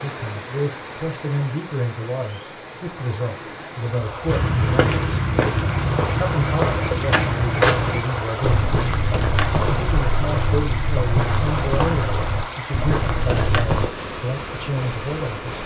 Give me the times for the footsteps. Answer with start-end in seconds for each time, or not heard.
4.2-13.9.